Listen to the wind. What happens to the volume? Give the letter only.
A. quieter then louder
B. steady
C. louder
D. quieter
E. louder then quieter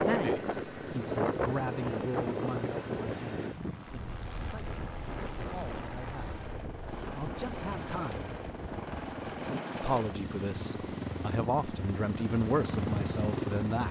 D.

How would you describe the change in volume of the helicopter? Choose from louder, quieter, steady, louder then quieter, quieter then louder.
louder.